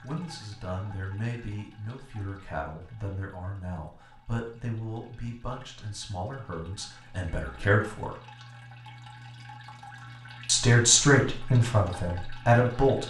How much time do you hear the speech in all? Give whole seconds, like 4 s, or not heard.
11 s.